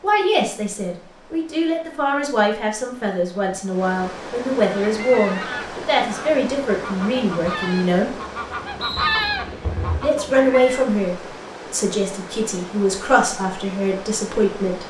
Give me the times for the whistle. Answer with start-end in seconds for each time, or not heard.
8.8-9.3.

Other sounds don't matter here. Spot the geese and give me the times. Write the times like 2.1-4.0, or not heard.
4.6-10.8.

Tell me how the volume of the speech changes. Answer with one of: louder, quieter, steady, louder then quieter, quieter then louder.
steady.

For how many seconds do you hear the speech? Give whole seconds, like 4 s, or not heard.
13 s.